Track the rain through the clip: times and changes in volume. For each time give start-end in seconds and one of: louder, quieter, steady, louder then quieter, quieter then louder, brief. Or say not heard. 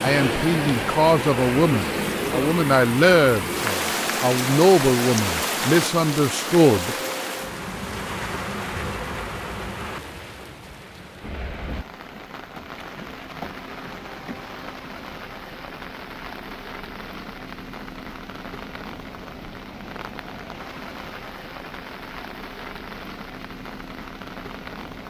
0.0-25.0 quieter.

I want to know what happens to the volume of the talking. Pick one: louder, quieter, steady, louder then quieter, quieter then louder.
steady.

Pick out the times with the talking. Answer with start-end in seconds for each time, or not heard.
0.0-7.0.